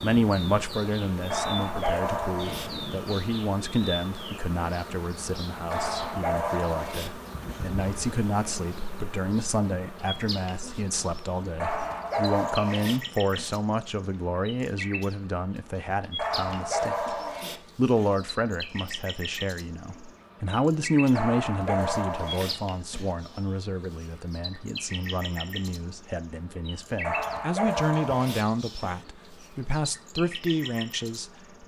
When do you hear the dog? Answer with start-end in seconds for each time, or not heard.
1.3-3.2, 5.7-7.7, 11.6-13.6, 16.1-18.1, 21.1-23.1, 27.0-29.0.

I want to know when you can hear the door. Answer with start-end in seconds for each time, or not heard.
not heard.